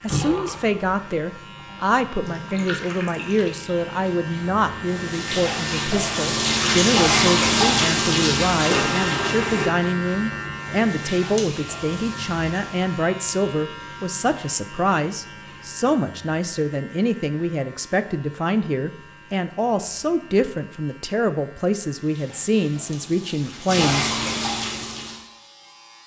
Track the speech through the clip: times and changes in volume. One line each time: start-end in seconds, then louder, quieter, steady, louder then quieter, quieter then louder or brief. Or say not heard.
0.0-24.2 steady.